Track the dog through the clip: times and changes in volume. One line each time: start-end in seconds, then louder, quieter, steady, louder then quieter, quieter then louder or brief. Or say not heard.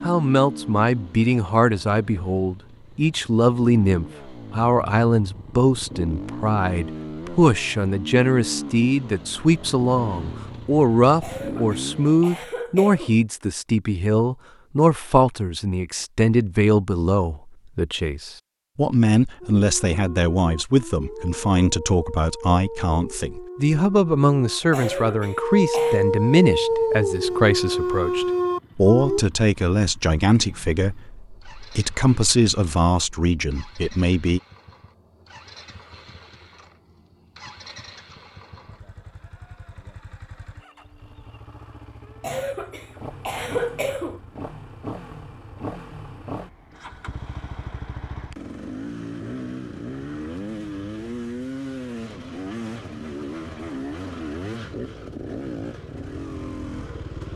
19.4-29.2 louder.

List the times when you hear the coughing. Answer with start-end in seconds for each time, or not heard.
11.2-13.2, 24.7-26.0, 42.2-44.2.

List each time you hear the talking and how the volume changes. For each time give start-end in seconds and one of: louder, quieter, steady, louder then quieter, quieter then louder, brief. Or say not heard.
0.0-34.4 steady.